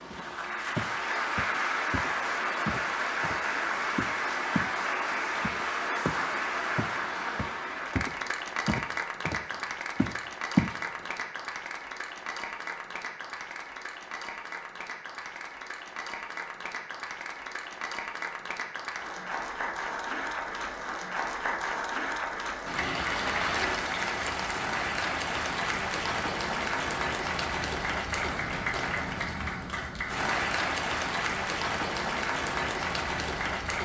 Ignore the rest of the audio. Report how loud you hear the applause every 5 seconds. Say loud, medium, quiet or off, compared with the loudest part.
loud, loud, medium, medium, loud, loud, loud.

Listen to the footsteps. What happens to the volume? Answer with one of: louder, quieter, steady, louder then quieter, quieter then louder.
louder.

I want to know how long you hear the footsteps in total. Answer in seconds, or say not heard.
10 s.